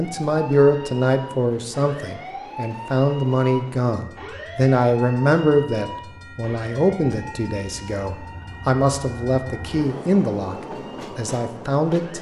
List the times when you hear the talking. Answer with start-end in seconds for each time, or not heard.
0.0-10.6, 11.2-12.1.